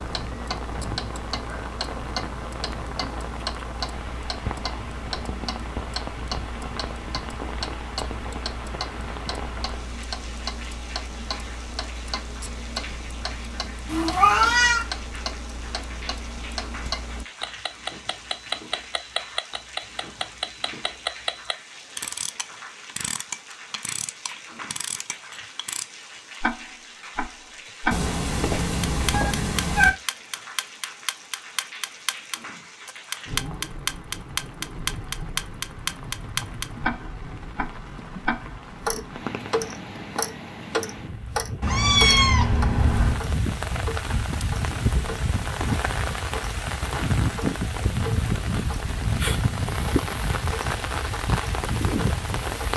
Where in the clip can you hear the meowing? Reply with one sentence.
The meowing can be heard from 13.8 to 14.8 s, from 27.9 to 29.9 s and from 41.6 to 43.2 s.